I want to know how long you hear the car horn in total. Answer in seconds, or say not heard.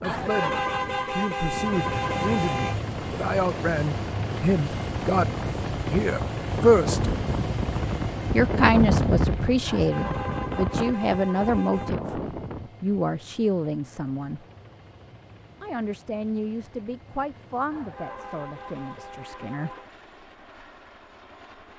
7 s.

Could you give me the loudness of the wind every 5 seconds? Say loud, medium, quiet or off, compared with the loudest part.
medium, loud, loud, off, off.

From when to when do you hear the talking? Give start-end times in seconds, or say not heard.
0.0-0.5, 1.1-5.3, 5.9-7.1, 8.3-14.4, 15.6-19.7.